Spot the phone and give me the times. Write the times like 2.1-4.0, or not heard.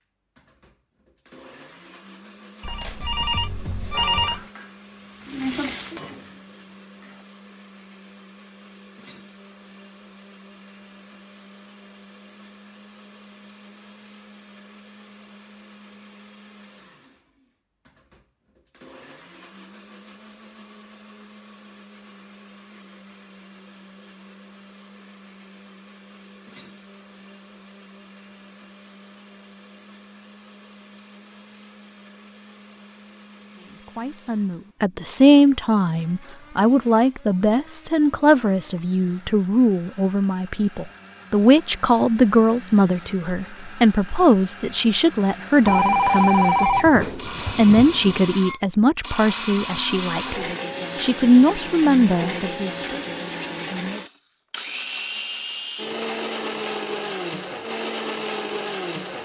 2.6-4.5, 45.6-48.2.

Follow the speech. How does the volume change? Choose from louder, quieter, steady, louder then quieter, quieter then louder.
steady.